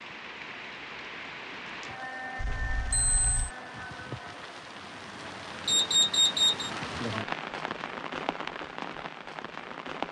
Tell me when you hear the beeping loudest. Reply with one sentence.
The volume of the beeping peaks at 6 seconds.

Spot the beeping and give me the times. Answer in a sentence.
You can hear the beeping from 2.4 to 3.5 s and from 5.7 to 6.7 s.